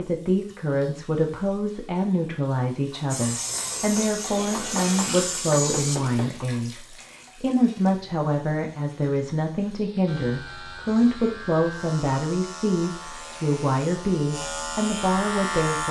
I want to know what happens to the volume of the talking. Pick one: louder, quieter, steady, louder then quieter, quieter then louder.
steady.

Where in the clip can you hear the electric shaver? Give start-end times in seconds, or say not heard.
3.1-6.0, 10.1-15.8.